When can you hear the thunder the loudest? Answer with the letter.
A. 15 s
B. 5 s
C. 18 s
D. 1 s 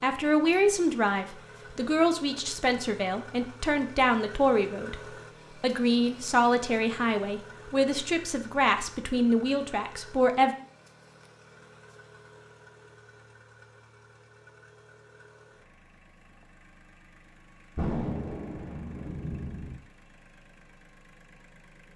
C.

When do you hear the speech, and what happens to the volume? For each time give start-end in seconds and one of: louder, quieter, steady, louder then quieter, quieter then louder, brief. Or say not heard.
0.0-10.6 steady.